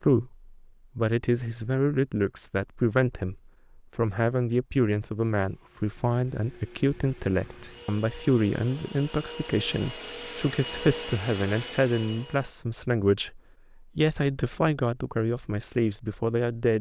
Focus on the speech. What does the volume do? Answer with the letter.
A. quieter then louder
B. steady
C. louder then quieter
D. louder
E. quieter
B.